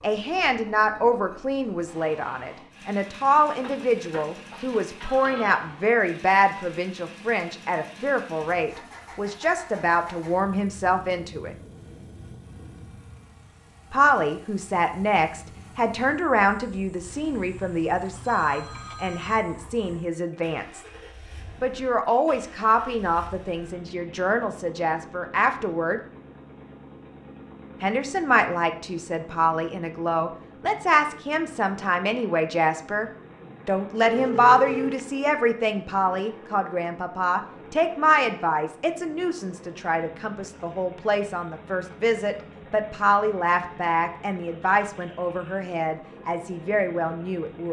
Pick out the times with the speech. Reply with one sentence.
The speech can be heard from 0.0 to 11.6 s, from 13.9 to 20.9 s, from 21.6 to 26.0 s and from 27.8 to 47.6 s.